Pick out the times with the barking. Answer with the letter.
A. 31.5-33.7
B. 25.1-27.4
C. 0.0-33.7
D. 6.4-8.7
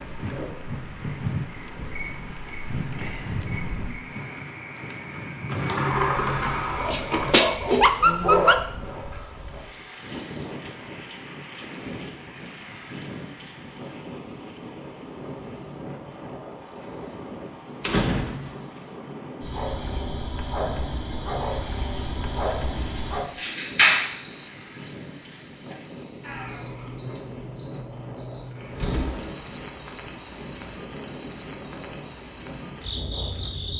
D.